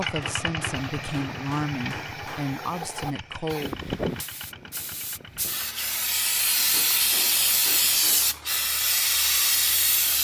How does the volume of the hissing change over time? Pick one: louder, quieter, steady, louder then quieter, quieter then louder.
louder.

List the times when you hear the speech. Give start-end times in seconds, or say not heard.
0.0-3.8.